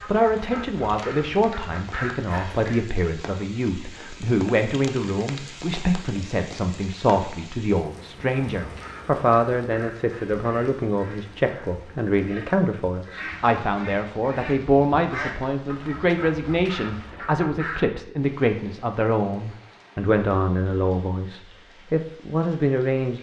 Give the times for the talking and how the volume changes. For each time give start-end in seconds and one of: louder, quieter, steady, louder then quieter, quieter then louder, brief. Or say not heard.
0.1-23.1 steady.